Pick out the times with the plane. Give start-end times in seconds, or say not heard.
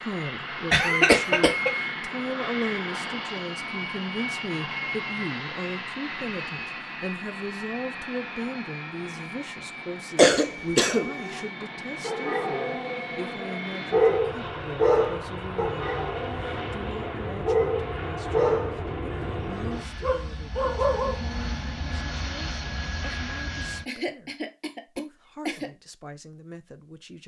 0.0-23.9.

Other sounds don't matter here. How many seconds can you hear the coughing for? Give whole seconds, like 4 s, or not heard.
4 s.